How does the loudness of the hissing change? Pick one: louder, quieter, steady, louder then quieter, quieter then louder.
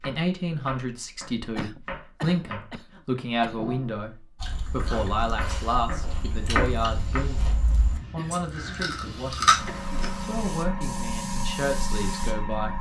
louder.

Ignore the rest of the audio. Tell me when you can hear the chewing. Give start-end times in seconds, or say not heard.
4.3-10.1.